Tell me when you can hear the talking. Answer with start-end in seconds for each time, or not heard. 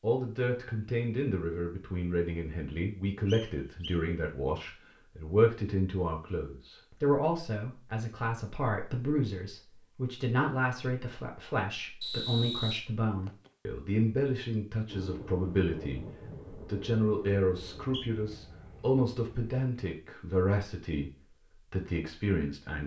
0.0-22.8.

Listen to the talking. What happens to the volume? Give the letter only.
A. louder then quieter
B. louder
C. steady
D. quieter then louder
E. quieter
C.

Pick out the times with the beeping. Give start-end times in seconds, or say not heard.
not heard.